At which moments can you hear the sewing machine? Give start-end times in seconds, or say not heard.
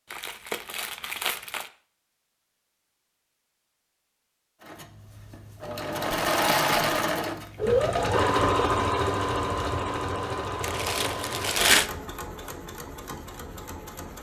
4.7-14.1.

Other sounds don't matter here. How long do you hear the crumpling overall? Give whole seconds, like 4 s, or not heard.
4 s.